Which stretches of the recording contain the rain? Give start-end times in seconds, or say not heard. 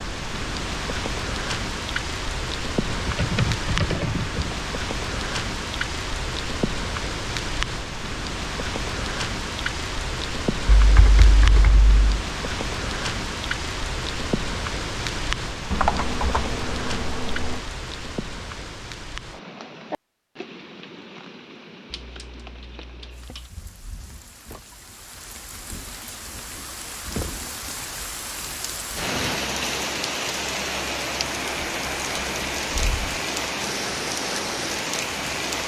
0.0-35.6.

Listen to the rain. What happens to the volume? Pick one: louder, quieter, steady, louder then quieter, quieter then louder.
quieter then louder.